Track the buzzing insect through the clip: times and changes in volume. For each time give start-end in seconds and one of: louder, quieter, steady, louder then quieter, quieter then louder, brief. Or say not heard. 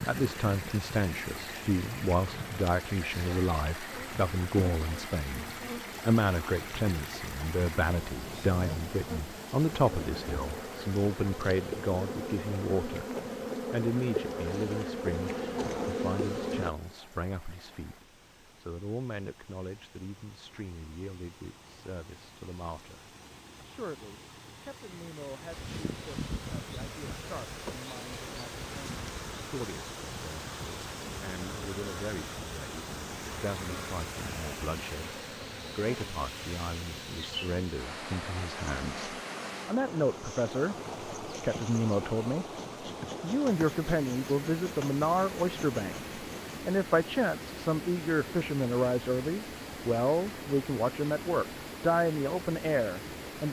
0.0-16.7 louder
25.5-46.6 steady.